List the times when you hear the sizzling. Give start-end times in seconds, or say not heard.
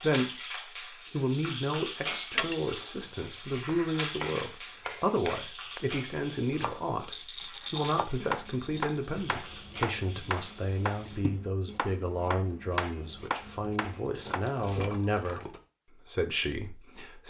0.0-11.2.